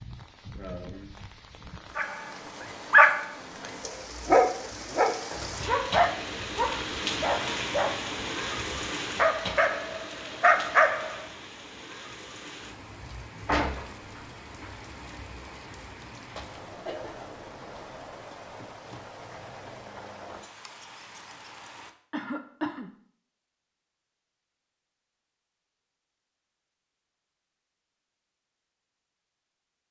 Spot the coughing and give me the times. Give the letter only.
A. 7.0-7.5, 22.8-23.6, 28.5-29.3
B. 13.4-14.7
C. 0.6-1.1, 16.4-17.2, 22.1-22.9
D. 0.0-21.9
C.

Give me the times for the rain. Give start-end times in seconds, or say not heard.
0.0-21.9.